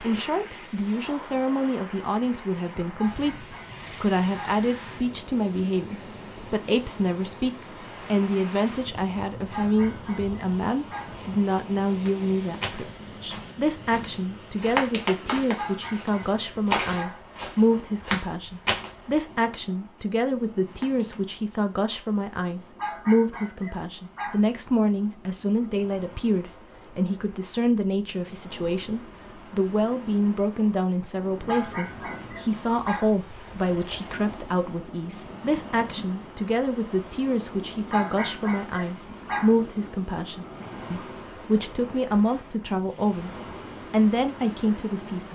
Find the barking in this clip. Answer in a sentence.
You can hear the barking from 3.0 to 4.6 s, from 9.5 to 11.2 s, from 15.6 to 17.2 s, from 22.8 to 24.4 s, from 31.4 to 33.1 s and from 37.9 to 39.5 s.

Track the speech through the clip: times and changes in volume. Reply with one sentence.
The speech can be heard from 0.0 to 43.3 s, at a steady volume; and briefly from 43.9 to 45.2 s.